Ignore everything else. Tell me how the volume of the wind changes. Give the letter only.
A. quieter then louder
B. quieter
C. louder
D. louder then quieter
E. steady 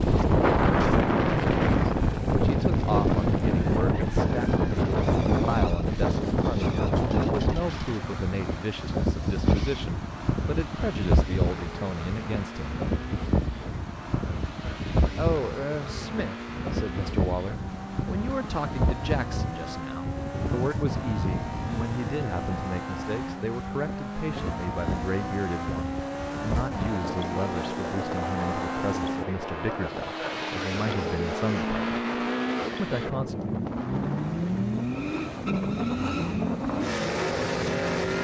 B.